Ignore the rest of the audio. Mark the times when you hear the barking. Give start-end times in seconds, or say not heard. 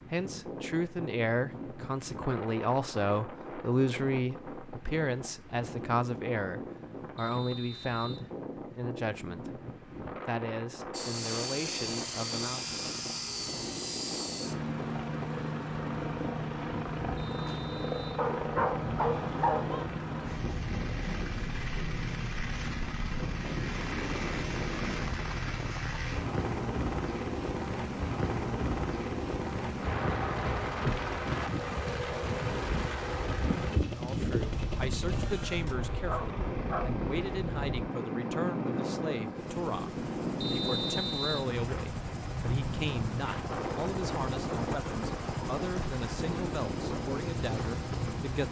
18.1-19.9, 36.0-37.0.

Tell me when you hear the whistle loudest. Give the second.
41 s.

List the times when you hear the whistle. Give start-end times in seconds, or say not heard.
7.2-8.3, 17.1-18.2, 40.4-41.5.